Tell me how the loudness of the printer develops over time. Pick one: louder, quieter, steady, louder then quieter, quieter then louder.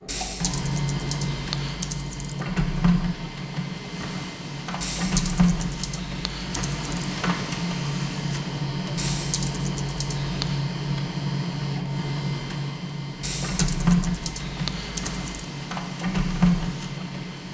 steady.